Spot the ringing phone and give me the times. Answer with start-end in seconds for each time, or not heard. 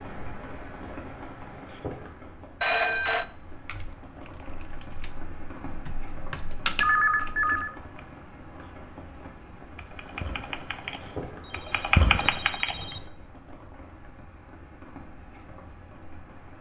2.6-3.2, 6.8-7.8, 11.4-13.1.